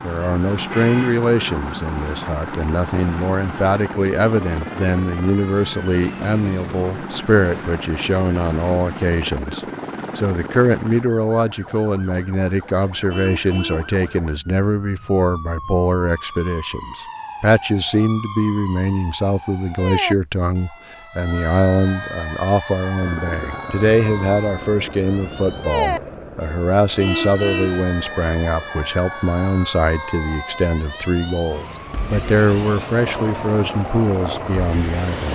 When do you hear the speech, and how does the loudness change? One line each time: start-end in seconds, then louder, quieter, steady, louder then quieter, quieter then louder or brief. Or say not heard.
0.0-35.2 steady.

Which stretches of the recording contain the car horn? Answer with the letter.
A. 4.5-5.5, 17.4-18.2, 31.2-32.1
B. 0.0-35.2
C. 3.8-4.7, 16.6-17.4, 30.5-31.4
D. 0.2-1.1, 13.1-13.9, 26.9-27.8
D.